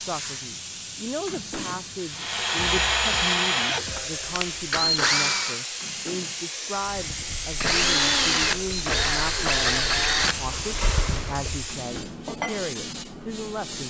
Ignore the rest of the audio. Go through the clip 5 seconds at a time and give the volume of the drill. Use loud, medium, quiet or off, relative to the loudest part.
loud, loud, medium.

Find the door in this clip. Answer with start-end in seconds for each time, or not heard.
1.2-1.9, 5.8-6.5, 11.7-12.3.